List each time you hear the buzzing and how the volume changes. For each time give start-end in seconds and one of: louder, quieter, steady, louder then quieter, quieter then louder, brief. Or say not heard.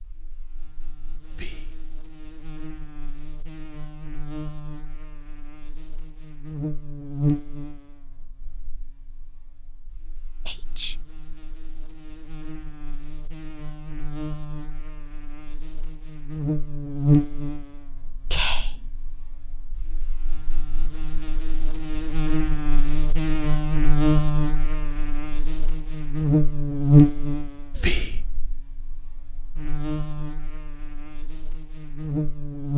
0.0-32.7 louder.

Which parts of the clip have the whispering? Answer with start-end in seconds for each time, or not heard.
1.2-1.8, 10.4-11.1, 18.3-18.9, 27.7-28.2.